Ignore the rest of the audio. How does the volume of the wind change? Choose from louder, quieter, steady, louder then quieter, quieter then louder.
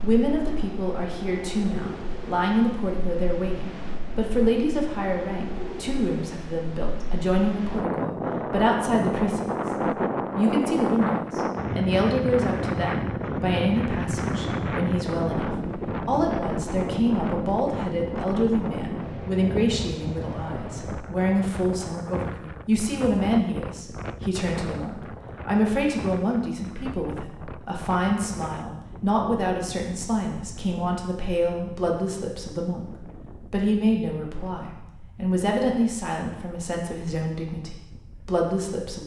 louder then quieter.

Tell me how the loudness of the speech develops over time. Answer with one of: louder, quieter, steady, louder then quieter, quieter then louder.
steady.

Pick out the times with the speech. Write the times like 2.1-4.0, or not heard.
0.0-9.7, 10.3-39.0.